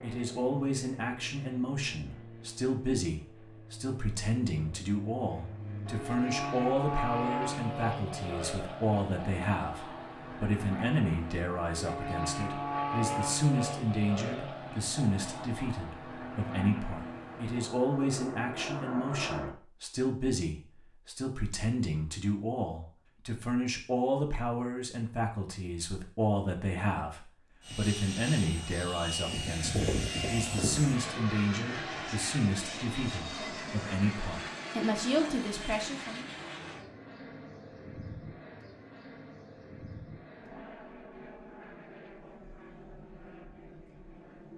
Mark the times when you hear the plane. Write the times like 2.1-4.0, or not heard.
0.0-19.6, 27.6-44.5.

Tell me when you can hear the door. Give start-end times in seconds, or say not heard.
not heard.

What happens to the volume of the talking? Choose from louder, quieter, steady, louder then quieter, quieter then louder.
steady.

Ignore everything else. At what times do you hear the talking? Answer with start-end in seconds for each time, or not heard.
0.0-36.2.